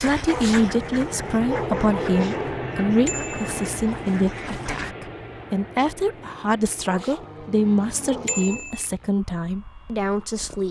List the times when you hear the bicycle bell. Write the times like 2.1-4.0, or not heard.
3.0-3.6, 8.2-8.8.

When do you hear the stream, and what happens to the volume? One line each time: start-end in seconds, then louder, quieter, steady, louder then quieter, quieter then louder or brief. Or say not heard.
not heard.